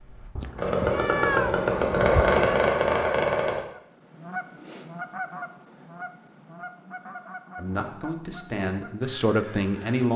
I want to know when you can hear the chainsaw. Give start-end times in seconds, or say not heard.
0.0-3.6.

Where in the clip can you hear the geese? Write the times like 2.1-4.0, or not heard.
3.7-10.1.